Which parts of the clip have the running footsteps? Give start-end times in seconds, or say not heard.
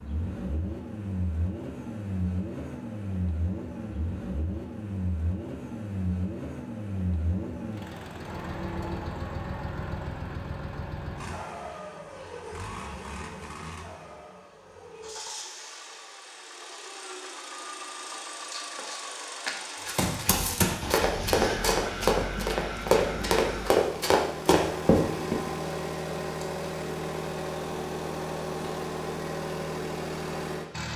19.9-25.4.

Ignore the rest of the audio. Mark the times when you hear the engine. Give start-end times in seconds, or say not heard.
0.0-30.9.